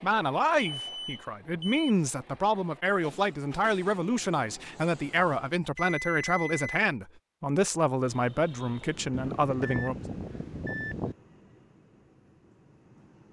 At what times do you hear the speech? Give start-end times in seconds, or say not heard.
0.0-10.1.